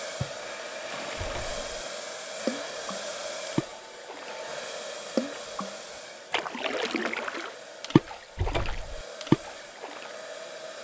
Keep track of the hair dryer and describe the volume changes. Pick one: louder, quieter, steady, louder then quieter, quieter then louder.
quieter.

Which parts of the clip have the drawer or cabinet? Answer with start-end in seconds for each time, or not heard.
1.1-1.6, 8.3-9.1.